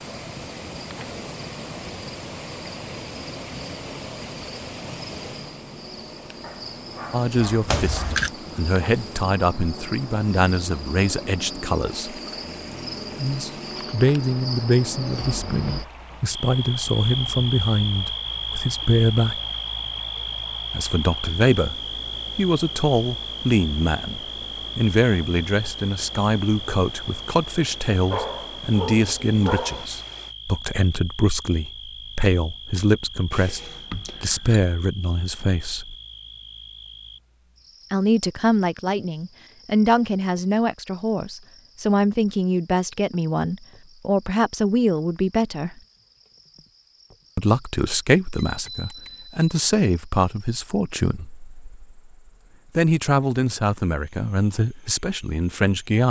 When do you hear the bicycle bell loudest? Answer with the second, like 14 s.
8 s.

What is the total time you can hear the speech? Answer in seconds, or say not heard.
42 s.